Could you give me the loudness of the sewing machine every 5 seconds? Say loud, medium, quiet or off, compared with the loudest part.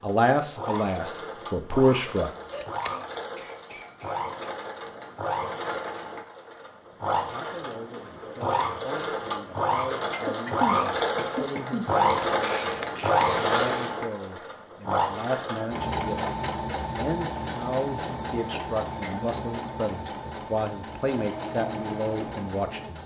medium, medium, loud, medium, medium.